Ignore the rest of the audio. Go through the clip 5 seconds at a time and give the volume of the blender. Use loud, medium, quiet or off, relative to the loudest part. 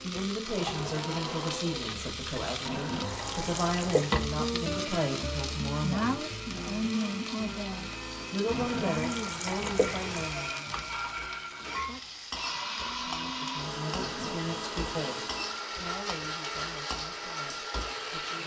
loud, medium, loud, loud.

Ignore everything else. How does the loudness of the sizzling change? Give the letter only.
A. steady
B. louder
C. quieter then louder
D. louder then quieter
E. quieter
D.